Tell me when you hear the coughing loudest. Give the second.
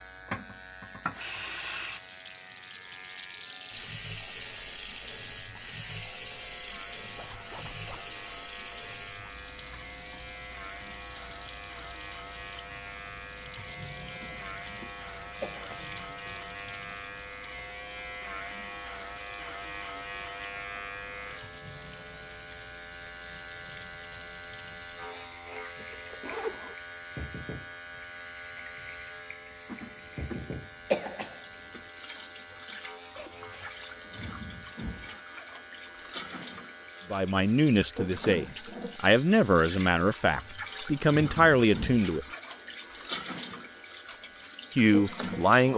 31 s.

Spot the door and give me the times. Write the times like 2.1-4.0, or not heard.
not heard.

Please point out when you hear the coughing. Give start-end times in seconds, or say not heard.
14.2-16.4, 29.6-31.8.